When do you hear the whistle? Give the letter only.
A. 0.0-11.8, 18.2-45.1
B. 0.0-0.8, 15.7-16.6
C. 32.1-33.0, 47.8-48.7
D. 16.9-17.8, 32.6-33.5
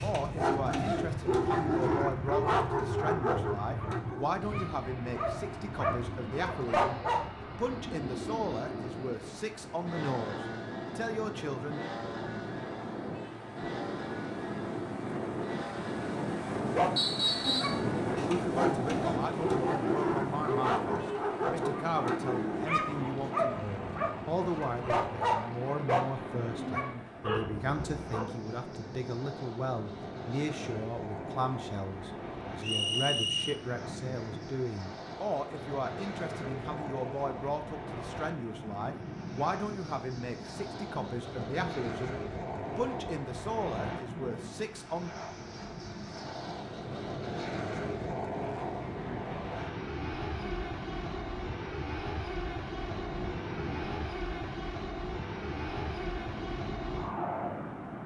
D.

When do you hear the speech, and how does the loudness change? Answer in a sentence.
You can hear the speech from 0.0 to 11.8 s, at a steady volume; and from 18.2 to 45.1 s, at a steady volume.